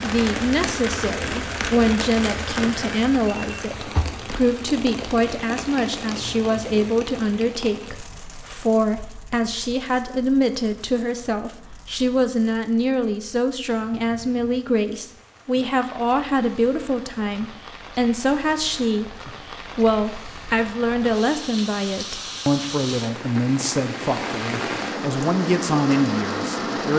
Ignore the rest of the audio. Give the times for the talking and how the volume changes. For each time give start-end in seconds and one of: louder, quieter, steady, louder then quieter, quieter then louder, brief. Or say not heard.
0.0-26.9 steady.